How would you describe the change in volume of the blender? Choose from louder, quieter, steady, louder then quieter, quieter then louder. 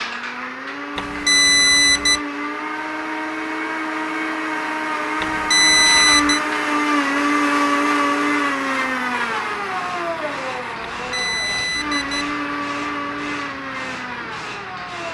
louder then quieter.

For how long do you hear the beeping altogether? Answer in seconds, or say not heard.
4 s.